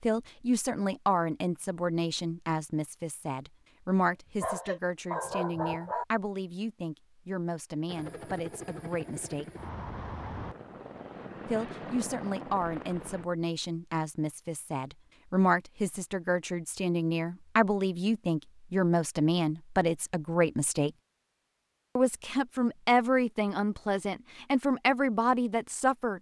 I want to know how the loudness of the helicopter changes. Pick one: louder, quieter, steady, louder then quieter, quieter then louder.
steady.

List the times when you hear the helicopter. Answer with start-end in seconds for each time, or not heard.
7.8-13.2.